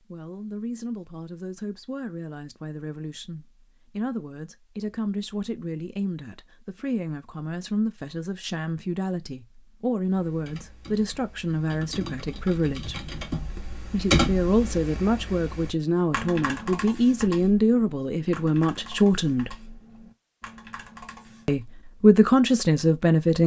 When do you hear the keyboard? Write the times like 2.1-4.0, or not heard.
10.1-21.6.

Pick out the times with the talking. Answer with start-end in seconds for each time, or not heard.
0.0-13.0, 13.8-19.6, 21.4-23.4.